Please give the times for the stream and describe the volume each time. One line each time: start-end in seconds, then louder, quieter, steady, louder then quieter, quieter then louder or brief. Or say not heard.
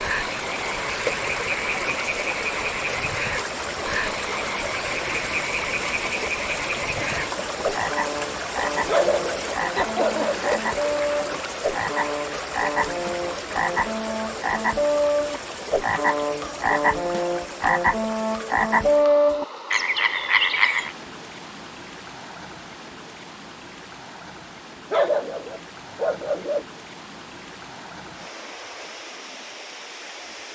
0.0-30.5 quieter.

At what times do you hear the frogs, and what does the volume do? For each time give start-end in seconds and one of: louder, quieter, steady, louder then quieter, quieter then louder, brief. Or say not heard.
0.0-20.9 louder.